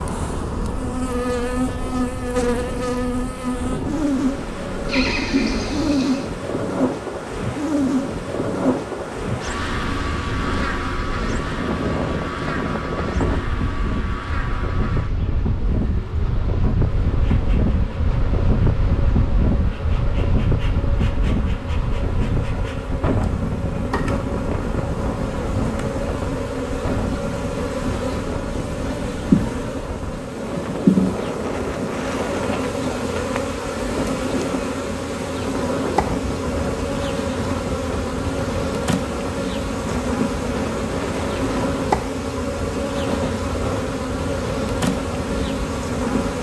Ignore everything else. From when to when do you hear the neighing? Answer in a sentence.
The neighing can be heard from 4.8 to 6.2 s.